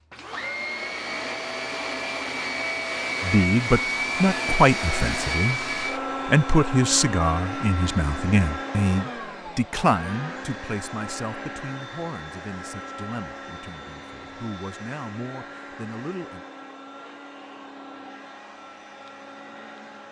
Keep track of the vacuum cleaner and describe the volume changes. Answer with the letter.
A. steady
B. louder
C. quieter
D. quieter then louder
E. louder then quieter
C.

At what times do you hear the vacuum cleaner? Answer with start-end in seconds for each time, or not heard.
0.1-20.0.